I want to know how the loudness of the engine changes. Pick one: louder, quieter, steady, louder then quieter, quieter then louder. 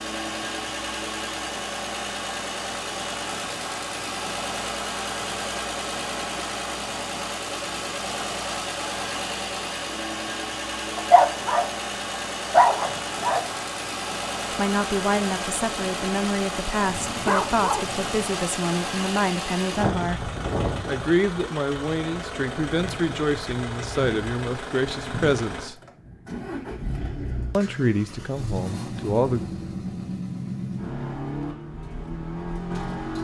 steady.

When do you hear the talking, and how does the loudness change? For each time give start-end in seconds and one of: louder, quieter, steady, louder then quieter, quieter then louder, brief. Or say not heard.
14.6-25.8 steady
27.5-29.4 brief.